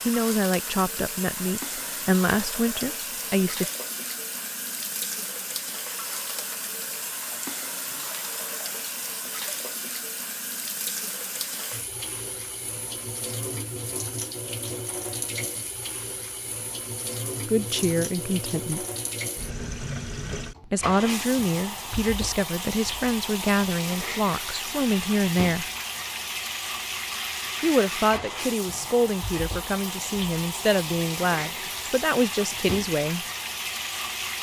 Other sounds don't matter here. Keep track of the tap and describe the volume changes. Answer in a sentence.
The loudness of the tap stays about the same.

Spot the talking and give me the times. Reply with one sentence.
You can hear the talking from 0.1 to 3.6 s, from 17.4 to 18.9 s, from 20.6 to 25.6 s and from 27.6 to 33.2 s.